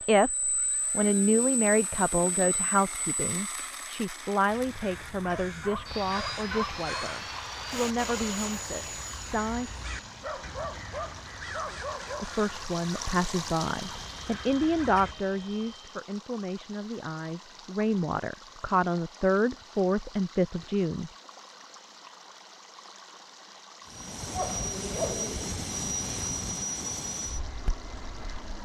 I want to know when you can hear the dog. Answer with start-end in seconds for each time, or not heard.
5.2-7.0, 9.9-12.2, 24.3-25.6.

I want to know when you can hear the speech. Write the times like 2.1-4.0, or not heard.
0.1-9.7, 12.2-21.1.